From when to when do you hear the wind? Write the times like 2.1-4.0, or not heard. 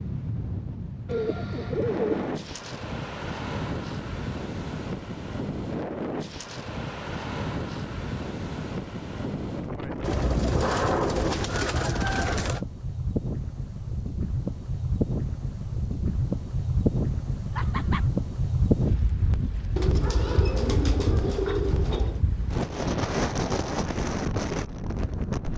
0.0-25.5.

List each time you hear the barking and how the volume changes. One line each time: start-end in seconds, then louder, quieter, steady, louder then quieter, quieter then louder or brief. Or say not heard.
not heard.